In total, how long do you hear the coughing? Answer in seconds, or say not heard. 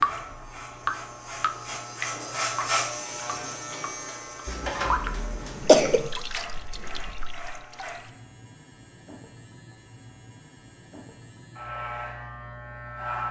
2 s.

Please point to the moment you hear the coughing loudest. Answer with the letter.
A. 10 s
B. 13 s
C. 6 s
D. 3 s
C.